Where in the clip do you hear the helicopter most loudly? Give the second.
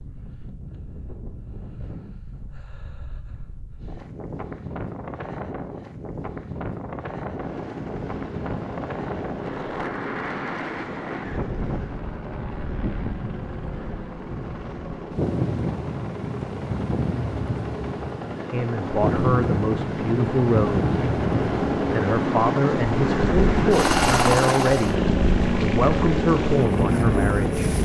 24 s.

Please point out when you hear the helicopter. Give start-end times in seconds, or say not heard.
7.2-27.8.